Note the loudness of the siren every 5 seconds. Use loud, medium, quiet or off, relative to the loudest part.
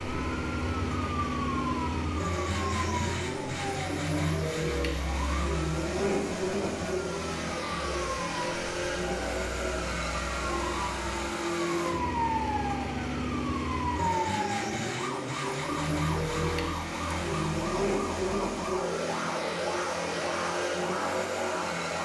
loud, medium, loud, loud, loud.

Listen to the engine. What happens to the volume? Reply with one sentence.
The volume of the engine stays about the same.